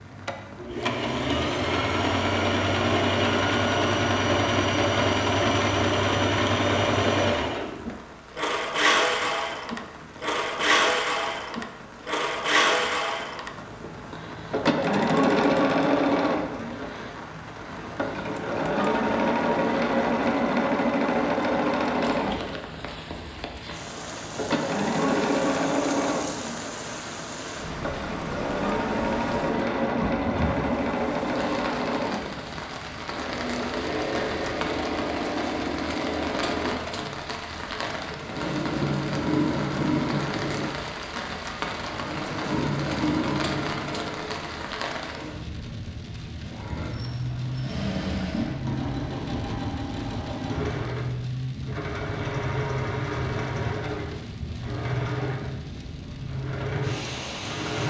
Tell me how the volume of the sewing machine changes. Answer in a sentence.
The loudness of the sewing machine goes down.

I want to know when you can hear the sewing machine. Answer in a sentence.
The sewing machine can be heard from 0.0 to 57.8 s.